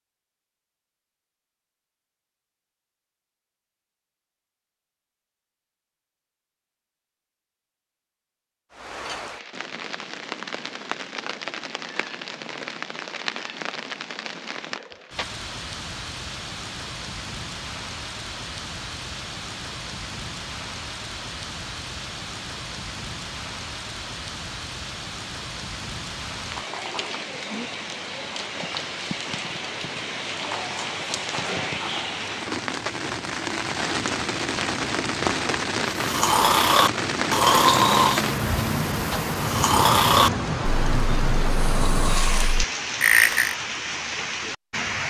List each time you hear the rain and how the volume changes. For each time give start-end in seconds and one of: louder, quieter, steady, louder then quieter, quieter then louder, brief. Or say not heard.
8.7-45.0 louder.